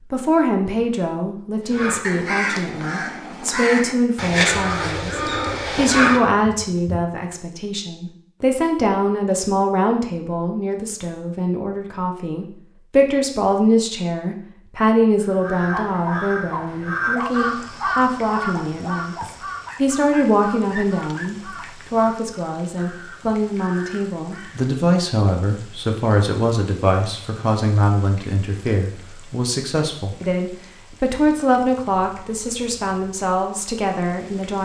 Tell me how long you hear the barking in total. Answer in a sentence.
You can hear the barking for 6 seconds altogether.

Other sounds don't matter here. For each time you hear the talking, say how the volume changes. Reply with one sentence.
The talking can be heard from 0.1 to 34.6 s, at a steady volume.